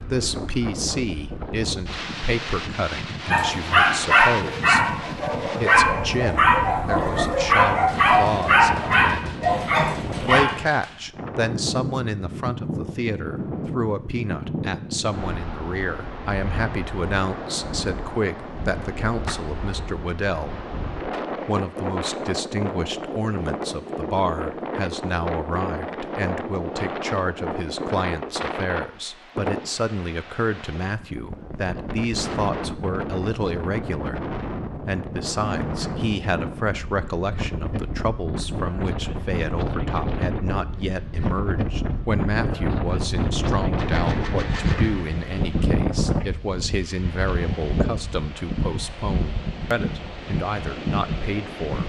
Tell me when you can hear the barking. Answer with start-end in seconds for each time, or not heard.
3.3-10.4.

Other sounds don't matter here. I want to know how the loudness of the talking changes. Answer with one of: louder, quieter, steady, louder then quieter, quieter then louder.
steady.